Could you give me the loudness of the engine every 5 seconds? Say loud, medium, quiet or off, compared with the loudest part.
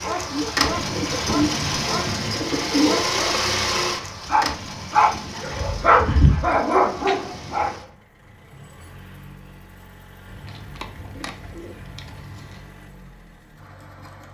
loud, quiet, quiet.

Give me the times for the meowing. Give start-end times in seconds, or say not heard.
not heard.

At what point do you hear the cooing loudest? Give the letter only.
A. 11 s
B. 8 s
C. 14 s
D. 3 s
D.